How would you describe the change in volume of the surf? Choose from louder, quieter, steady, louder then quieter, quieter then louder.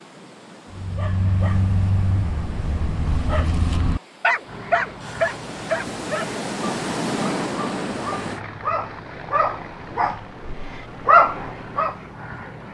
louder.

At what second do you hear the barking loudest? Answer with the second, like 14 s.
11 s.